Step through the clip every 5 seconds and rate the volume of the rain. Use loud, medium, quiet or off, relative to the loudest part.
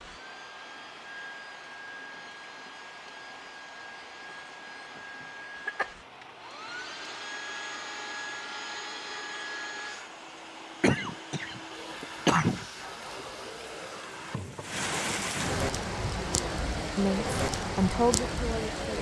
quiet, quiet, medium, loud.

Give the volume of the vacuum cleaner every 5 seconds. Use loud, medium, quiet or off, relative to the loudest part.
medium, loud, loud, loud.